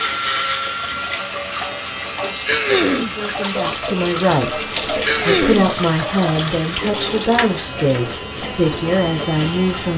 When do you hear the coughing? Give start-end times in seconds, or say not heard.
2.5-3.1, 5.0-5.7.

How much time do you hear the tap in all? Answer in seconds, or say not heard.
10 s.